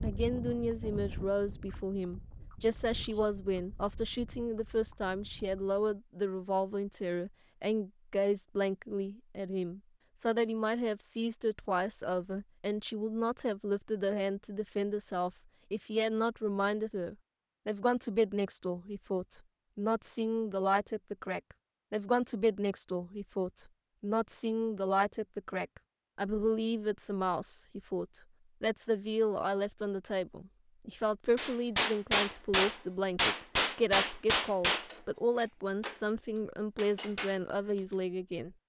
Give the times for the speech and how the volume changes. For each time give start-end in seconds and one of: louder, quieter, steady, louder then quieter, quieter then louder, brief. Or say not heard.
0.0-38.5 steady.